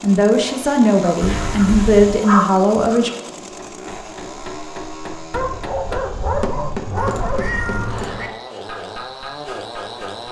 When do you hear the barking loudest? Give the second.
2 s.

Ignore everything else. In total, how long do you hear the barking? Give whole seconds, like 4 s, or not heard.
5 s.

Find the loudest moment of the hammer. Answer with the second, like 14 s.
7 s.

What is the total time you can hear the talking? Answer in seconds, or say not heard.
3 s.